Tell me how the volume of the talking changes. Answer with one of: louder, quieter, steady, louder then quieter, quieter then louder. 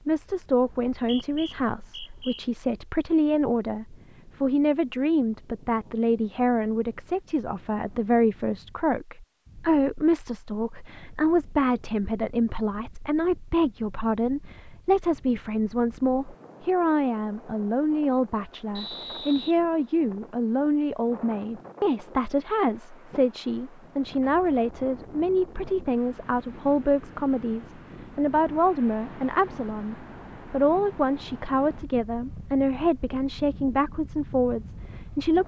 steady.